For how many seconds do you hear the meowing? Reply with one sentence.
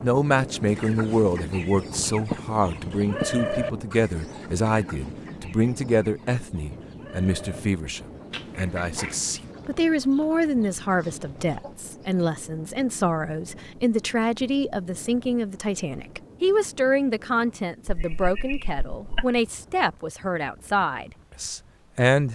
You can hear the meowing for 4 seconds altogether.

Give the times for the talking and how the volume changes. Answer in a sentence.
You can hear the talking from 0.0 to 22.2 s, at a steady volume.